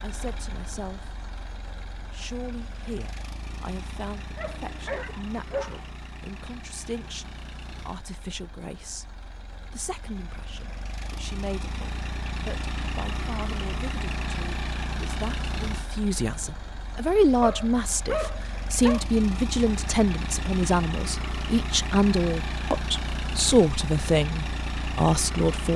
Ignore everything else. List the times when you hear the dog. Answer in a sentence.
The dog can be heard from 4.3 to 5.8 s and from 17.4 to 19.1 s.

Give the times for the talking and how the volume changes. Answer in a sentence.
You can hear the talking briefly from 0.0 to 1.1 s; and from 2.1 to 25.7 s, getting louder.